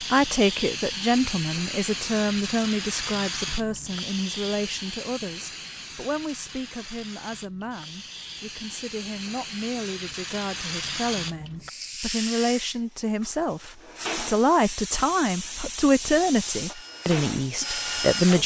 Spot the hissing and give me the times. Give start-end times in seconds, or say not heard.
0.0-18.4.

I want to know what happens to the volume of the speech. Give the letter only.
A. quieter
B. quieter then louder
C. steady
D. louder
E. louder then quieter
B.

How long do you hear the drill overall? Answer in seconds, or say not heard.
2 s.